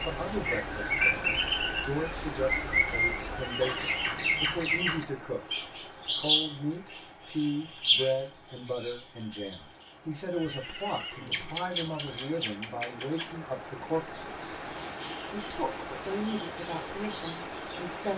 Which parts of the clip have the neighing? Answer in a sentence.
You can hear the neighing from 3.4 to 4.1 s and from 10.3 to 12.4 s.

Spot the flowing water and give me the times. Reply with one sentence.
You can hear the flowing water from 0.0 to 18.1 s.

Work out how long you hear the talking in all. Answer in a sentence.
The talking can be heard for 17 seconds in total.